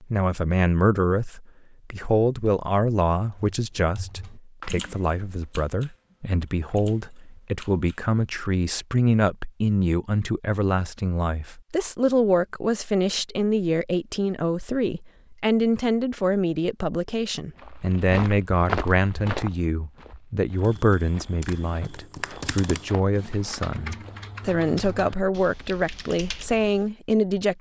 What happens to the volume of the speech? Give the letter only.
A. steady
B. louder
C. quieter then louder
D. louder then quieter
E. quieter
A.